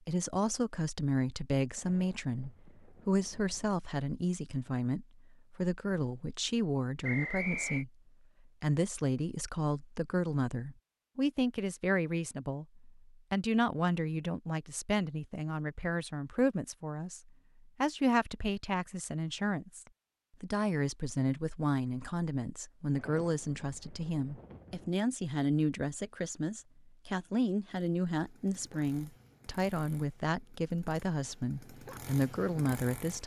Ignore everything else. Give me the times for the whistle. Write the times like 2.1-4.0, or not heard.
7.0-7.8.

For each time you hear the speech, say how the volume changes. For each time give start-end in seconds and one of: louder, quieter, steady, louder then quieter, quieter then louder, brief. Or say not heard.
0.1-7.9 steady
8.6-33.2 steady.